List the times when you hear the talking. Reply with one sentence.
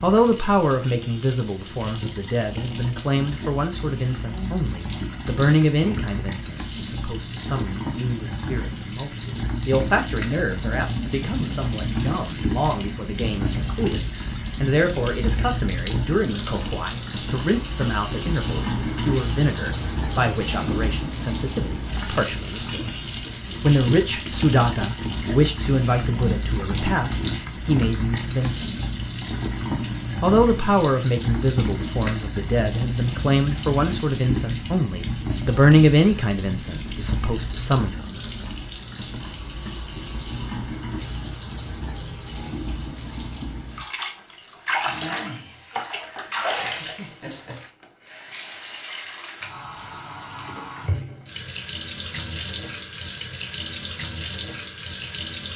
The talking can be heard from 0.0 to 22.9 s, from 23.6 to 28.9 s and from 30.2 to 37.9 s.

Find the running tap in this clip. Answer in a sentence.
You can hear the running tap from 0.0 to 55.5 s.